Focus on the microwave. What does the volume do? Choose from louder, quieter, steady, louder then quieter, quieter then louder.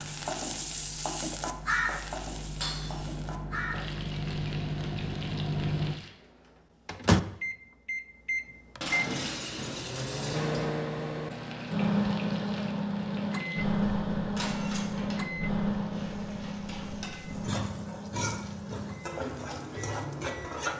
louder then quieter.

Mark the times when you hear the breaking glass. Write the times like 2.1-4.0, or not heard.
2.6-3.1, 8.8-10.7, 14.3-15.0.